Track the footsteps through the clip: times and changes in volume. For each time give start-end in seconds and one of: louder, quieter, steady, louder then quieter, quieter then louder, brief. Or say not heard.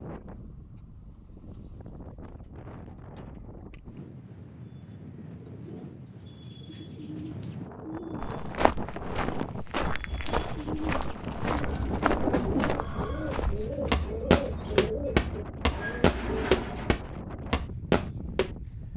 8.2-18.5 louder.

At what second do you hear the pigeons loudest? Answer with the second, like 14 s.
12 s.